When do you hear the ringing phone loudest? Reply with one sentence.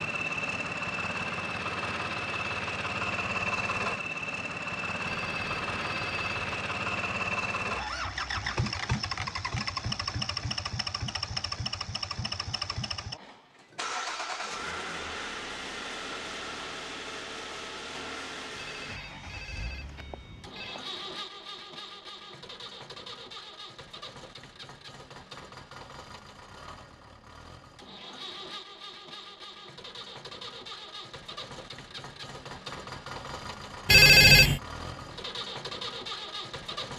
The loudest moment of the ringing phone is at 34 seconds.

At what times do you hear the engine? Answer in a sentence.
The engine can be heard from 0.0 to 36.9 s.